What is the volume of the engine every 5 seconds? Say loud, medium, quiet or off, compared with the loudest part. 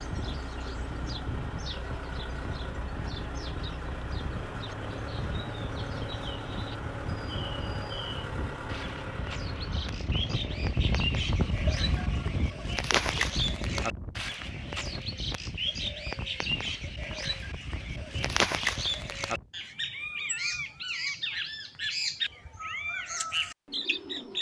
loud, loud, medium, off, off.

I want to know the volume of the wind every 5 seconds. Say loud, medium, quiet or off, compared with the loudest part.
medium, medium, loud, medium, off.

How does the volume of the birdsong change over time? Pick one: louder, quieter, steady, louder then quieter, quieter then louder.
louder.